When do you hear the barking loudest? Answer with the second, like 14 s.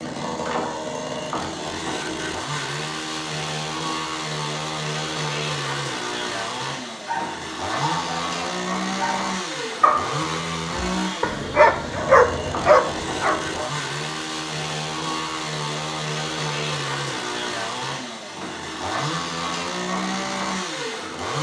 12 s.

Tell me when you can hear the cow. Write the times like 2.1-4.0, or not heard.
not heard.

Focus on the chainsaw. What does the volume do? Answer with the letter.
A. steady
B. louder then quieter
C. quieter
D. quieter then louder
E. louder
A.